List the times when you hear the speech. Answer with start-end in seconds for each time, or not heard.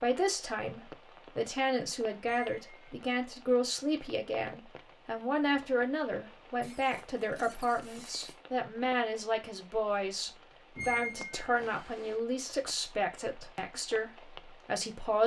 0.0-15.2.